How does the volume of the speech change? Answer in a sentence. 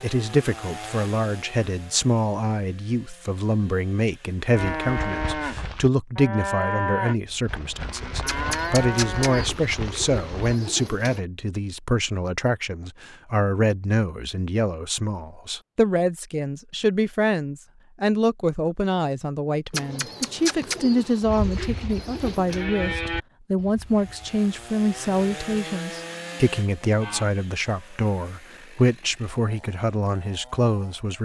The volume of the speech stays about the same.